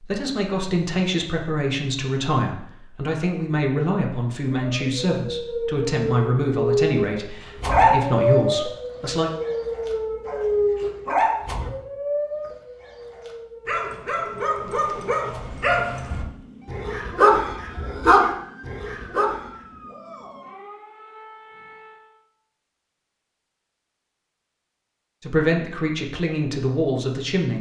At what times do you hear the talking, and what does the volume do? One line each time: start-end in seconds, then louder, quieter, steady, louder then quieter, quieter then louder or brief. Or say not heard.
0.0-9.3 steady
25.2-27.5 brief.